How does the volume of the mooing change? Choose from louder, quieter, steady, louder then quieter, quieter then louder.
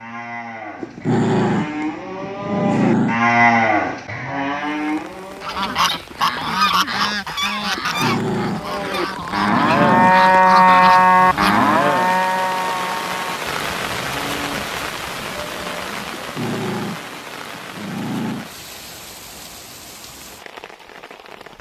louder then quieter.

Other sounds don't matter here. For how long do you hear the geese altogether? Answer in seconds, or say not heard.
6 s.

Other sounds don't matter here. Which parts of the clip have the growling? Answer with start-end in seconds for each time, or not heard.
0.8-3.2, 7.8-10.3, 16.1-18.5.